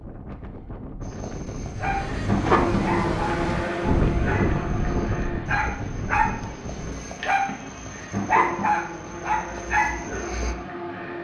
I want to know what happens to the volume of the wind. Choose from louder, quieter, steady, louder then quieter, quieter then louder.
louder then quieter.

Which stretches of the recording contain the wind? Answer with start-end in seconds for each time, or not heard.
0.0-7.2.